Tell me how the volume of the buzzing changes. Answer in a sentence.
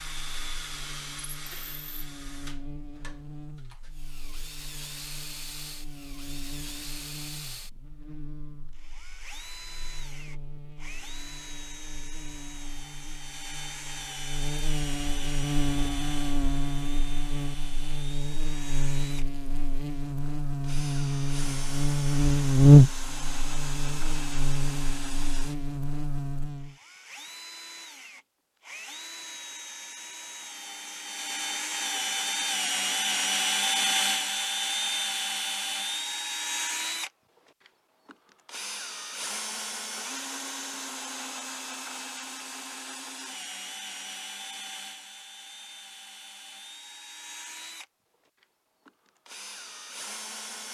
The volume of the buzzing goes up.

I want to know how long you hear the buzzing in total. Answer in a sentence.
The buzzing can be heard for 27 seconds in total.